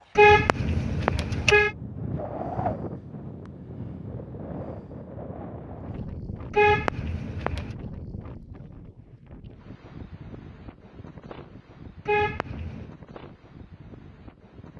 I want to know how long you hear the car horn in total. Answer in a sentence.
You can hear the car horn for 4 seconds altogether.